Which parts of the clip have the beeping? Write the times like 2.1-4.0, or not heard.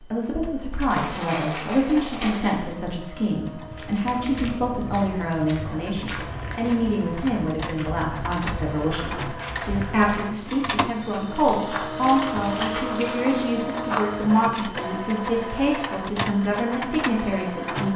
not heard.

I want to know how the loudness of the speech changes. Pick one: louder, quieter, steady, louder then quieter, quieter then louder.
steady.